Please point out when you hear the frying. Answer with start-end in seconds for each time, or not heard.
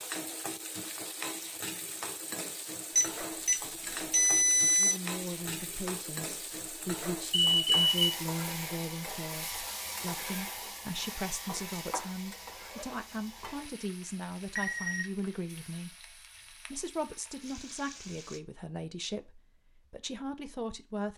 0.0-18.4.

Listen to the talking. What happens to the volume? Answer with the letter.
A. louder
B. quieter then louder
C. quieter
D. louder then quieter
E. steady
E.